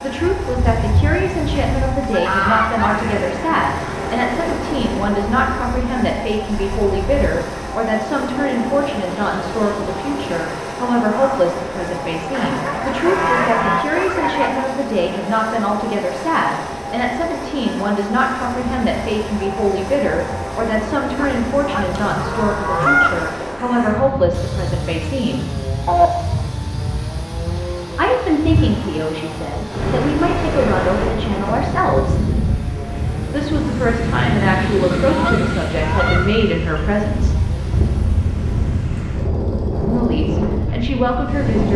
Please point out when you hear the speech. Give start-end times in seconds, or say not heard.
0.0-25.5, 27.9-32.2, 33.3-37.4, 39.9-41.7.